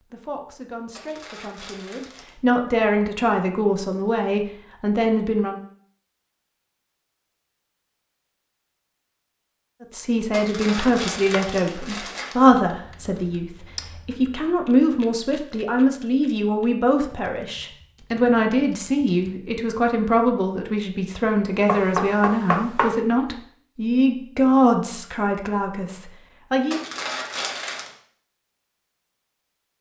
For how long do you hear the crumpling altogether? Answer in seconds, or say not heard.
5 s.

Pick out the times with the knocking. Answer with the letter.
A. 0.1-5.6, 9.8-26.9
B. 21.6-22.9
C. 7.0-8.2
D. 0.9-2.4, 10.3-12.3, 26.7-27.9
B.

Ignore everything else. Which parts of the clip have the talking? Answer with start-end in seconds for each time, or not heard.
0.1-5.6, 9.8-26.9.